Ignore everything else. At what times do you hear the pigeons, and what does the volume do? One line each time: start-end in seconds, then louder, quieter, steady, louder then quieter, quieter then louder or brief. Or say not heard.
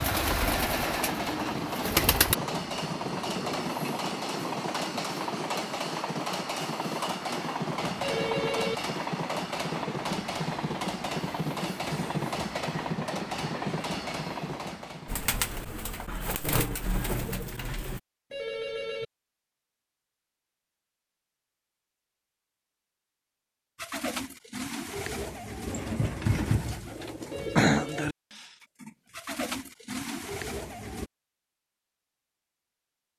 0.0-2.4 brief
15.1-18.0 brief
23.8-31.1 louder then quieter.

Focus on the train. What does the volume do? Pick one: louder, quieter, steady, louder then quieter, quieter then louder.
steady.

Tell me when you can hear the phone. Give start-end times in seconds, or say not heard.
8.0-8.8, 18.3-19.1, 27.3-28.1.